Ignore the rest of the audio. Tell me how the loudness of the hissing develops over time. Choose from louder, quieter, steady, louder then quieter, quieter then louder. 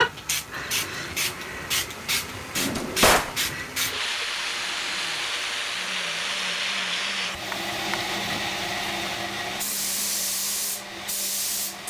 steady.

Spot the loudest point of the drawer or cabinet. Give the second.
3 s.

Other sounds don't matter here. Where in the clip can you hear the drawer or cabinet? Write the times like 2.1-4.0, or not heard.
2.5-3.4, 7.5-8.4.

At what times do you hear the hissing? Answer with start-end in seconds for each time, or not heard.
0.0-11.8.